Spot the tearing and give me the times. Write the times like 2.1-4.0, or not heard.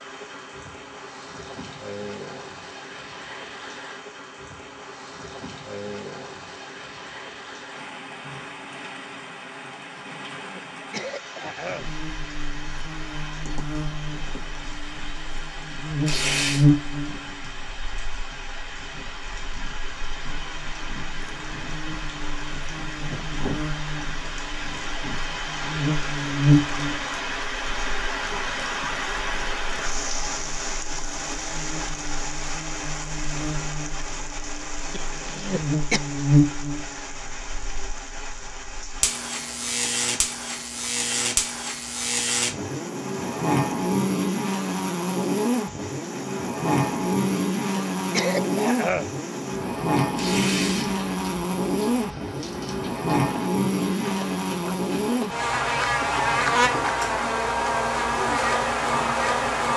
16.1-16.6, 50.1-50.9.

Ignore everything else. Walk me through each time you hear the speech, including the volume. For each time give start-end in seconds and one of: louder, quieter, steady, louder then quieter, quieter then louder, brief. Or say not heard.
not heard.